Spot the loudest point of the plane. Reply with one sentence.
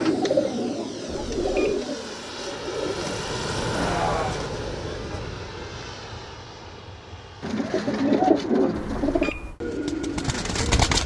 The volume of the plane peaks at 4 seconds.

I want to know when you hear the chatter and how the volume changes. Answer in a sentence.
You can't hear the chatter here.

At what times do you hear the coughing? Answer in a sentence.
You can hear the coughing from 3.7 to 4.5 s.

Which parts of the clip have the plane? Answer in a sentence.
The plane can be heard from 0.0 to 7.5 s.